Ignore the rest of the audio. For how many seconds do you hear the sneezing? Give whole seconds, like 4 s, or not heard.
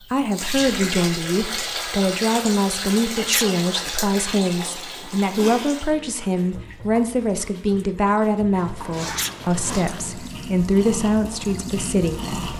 2 s.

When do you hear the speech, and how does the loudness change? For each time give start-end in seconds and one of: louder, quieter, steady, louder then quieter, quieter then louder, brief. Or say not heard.
0.1-12.5 steady.